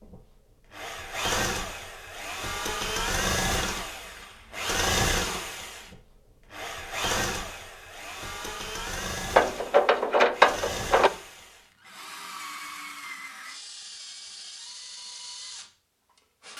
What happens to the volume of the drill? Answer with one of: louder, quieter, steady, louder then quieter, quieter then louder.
quieter.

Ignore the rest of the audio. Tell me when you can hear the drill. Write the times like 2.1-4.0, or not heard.
0.0-16.5.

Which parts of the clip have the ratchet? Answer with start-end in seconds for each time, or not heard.
9.3-11.1.